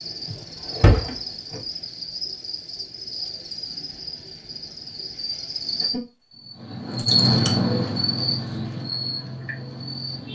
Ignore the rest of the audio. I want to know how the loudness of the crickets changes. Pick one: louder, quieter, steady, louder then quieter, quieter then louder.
louder then quieter.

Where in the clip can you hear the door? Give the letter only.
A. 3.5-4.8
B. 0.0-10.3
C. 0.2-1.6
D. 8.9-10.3
C.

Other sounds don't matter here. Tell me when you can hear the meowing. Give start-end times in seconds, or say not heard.
not heard.